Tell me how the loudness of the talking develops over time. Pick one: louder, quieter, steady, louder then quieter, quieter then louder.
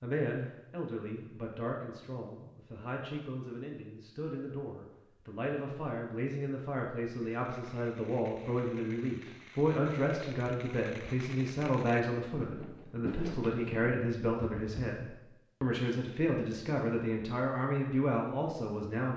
louder.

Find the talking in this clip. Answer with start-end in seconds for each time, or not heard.
0.0-19.1.